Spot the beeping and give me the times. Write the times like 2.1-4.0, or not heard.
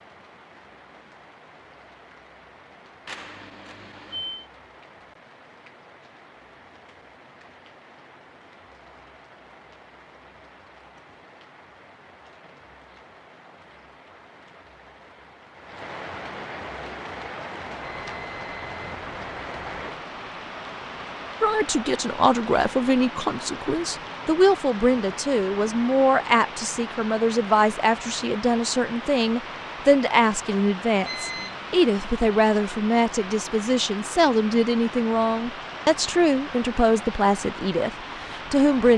3.0-4.5, 17.8-19.6, 31.0-31.7.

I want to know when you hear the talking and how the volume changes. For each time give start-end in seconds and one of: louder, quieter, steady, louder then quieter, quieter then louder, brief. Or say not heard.
21.4-38.9 steady.